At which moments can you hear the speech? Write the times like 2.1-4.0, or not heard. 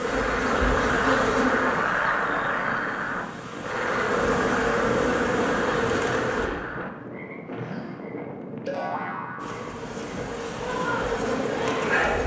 not heard.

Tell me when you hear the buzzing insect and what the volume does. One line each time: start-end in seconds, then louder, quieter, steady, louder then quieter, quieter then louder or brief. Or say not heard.
0.0-6.5 quieter then louder
9.4-12.2 brief.